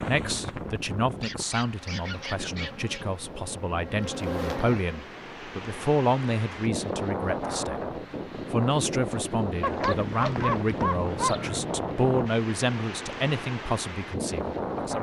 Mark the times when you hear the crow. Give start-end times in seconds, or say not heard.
not heard.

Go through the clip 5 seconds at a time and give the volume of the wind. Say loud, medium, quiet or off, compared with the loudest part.
medium, loud, loud.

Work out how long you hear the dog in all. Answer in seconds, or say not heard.
4 s.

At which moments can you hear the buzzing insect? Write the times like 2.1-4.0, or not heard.
1.8-5.0.